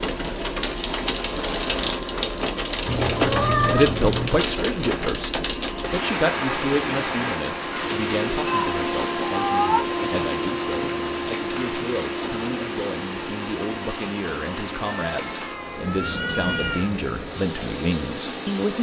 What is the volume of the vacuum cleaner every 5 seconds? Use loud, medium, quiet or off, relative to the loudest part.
medium, loud, loud, medium.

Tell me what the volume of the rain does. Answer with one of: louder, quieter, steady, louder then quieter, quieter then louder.
quieter.